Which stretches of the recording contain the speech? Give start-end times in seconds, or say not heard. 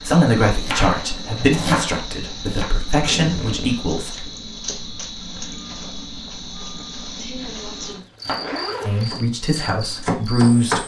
0.0-4.2, 8.8-10.8.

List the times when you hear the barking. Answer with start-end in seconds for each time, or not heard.
not heard.